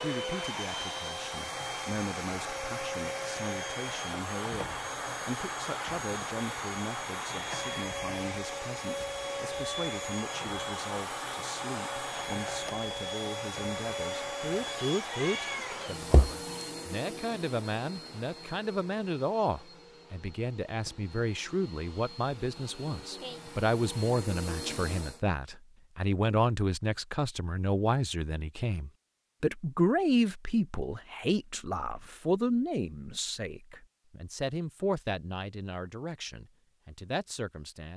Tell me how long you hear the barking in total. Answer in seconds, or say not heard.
not heard.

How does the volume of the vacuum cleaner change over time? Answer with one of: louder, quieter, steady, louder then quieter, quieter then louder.
quieter.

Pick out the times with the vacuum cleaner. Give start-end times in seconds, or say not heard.
0.0-25.2.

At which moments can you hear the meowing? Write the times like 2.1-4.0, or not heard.
15.1-16.3.